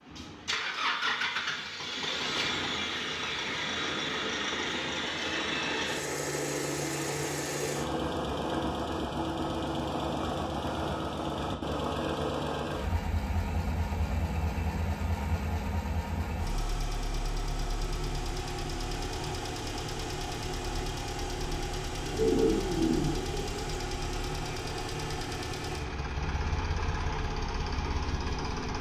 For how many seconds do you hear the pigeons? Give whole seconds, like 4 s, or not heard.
2 s.